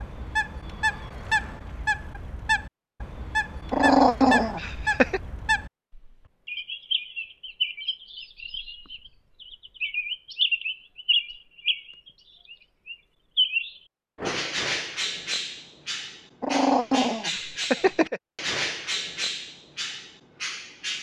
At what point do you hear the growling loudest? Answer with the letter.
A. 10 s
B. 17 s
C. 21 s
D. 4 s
D.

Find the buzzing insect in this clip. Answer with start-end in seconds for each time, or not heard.
not heard.